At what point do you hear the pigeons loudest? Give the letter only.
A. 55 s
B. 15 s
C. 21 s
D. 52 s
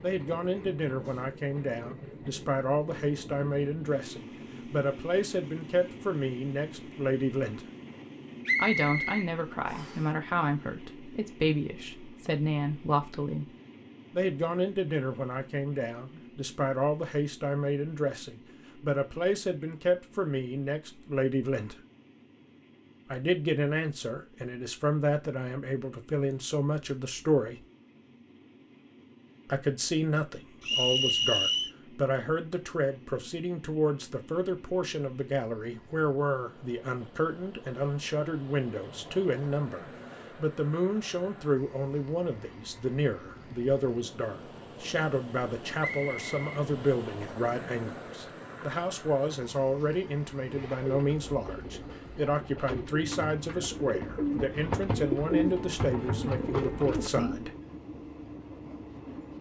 A.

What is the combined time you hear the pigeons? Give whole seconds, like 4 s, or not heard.
7 s.